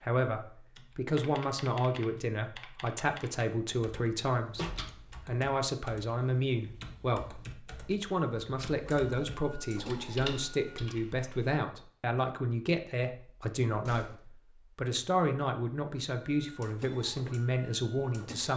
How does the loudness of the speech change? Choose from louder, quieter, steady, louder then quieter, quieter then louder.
steady.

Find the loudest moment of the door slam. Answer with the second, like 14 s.
5 s.